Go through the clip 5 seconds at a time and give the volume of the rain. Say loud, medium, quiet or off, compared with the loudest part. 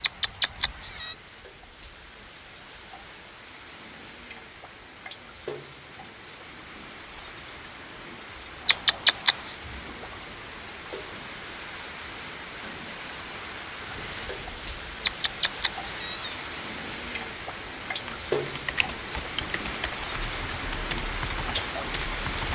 quiet, medium, medium, loud, loud.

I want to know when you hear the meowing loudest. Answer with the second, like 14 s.
9 s.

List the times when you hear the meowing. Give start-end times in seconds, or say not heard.
0.0-1.1, 8.7-9.6, 15.1-16.5.